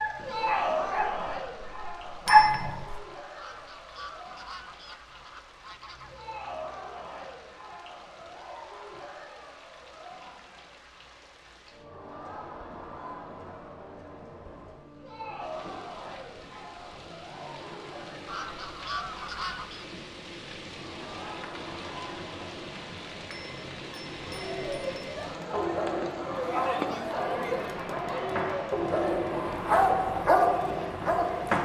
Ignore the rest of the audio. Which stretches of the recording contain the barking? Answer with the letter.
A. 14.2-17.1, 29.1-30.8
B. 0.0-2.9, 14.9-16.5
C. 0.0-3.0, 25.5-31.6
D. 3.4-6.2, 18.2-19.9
C.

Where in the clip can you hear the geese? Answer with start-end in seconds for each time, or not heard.
3.4-6.2, 18.2-19.9.